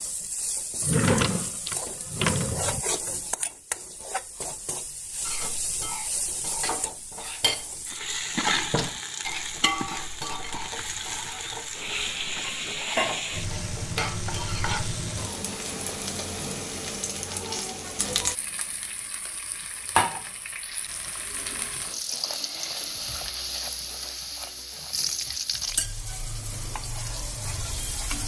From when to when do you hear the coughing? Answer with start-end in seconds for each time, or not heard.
not heard.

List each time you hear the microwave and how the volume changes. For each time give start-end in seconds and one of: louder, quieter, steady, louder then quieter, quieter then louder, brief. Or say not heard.
not heard.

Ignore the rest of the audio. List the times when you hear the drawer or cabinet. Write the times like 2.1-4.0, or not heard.
0.8-2.8.